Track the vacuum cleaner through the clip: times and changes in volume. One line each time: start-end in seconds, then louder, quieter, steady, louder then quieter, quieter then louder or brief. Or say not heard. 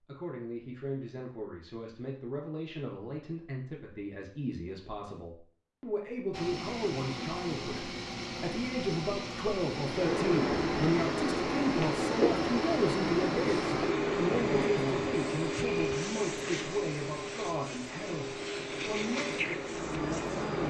6.3-20.6 steady.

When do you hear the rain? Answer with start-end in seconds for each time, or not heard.
9.7-20.6.